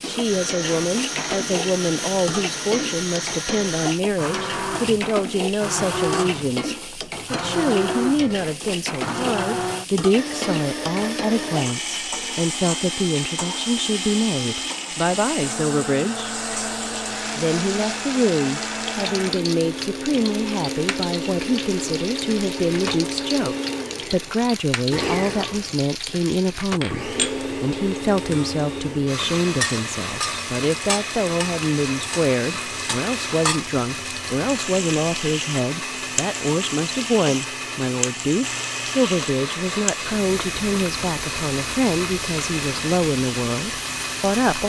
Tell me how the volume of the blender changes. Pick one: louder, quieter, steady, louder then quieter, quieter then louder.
steady.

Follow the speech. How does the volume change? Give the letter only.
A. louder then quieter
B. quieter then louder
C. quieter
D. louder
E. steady
E.